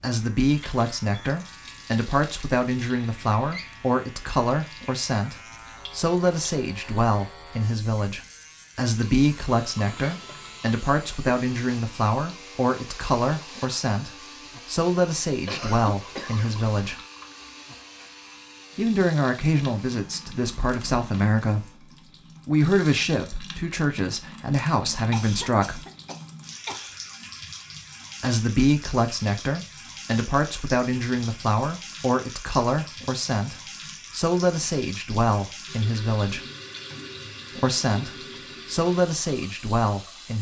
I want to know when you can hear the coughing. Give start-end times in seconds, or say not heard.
15.4-16.5, 25.1-26.9.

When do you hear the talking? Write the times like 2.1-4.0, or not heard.
0.0-17.0, 18.8-21.9, 22.4-25.9, 28.2-36.5, 37.5-40.3.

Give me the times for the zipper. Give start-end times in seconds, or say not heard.
not heard.